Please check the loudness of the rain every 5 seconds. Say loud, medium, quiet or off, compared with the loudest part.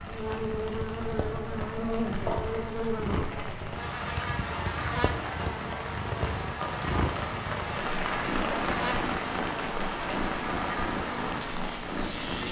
medium, loud, loud.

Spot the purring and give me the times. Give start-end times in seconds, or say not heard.
0.1-12.4.